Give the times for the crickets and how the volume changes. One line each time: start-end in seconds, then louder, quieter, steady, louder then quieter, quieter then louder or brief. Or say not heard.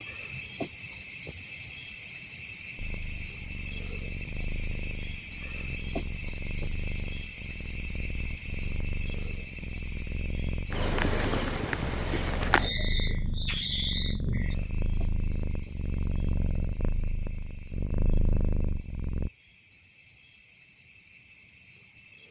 0.0-22.2 quieter.